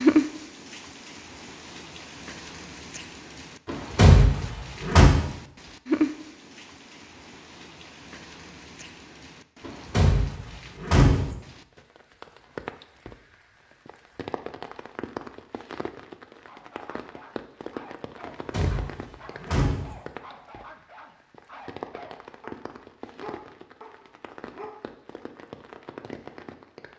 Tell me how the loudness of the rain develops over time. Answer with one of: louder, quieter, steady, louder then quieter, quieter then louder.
louder then quieter.